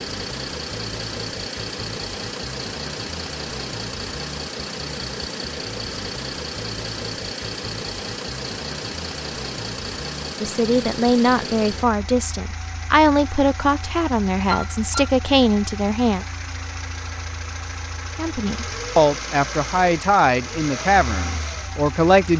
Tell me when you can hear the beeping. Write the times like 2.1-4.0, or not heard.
14.4-15.1.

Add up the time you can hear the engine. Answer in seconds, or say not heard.
22 s.